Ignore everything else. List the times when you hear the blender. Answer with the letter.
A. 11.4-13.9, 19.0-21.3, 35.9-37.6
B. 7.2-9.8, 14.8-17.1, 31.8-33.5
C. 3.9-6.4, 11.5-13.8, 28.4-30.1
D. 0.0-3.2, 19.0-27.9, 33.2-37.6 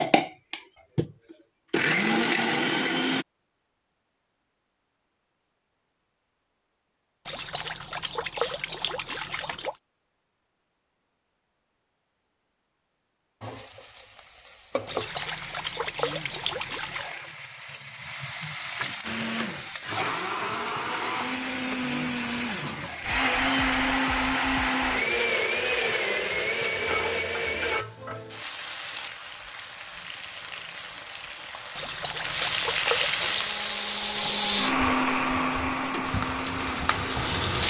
D.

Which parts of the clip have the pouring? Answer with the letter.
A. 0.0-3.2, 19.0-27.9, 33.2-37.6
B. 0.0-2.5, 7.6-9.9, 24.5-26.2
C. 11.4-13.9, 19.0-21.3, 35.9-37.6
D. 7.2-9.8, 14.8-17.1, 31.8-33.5
D.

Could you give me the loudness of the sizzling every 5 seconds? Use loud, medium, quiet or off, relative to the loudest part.
off, off, medium, medium, medium, medium, loud, loud.